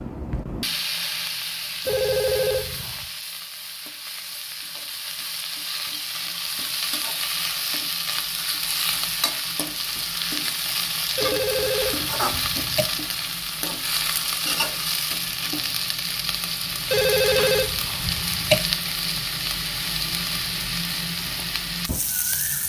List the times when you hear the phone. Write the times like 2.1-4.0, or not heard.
1.9-3.0, 11.2-12.8, 16.9-18.6.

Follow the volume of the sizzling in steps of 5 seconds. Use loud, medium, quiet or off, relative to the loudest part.
medium, loud, loud, loud, loud.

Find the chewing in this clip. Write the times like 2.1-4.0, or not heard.
not heard.